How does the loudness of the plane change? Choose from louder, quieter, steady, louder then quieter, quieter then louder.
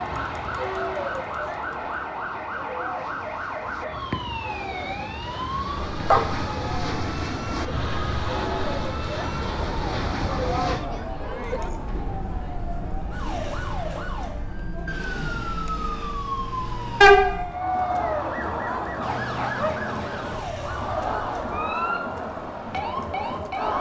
louder.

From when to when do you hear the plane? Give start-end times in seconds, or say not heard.
0.0-10.8.